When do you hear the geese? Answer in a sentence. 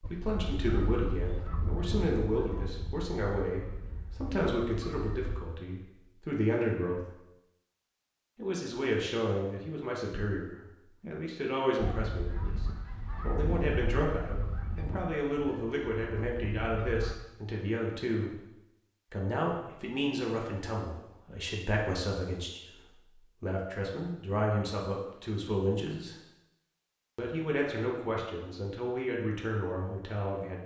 The geese can be heard from 0.0 to 5.4 s and from 11.8 to 17.1 s.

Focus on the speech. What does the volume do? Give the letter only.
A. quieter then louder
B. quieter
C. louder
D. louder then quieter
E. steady
E.